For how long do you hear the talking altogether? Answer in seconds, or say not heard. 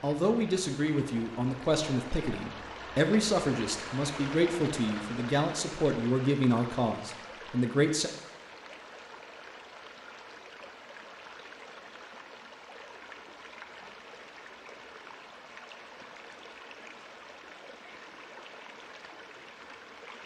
8 s.